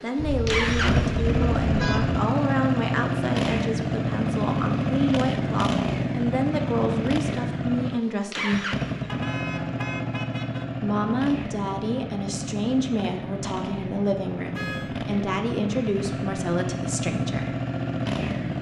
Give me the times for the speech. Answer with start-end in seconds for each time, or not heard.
0.0-8.7, 10.8-17.6.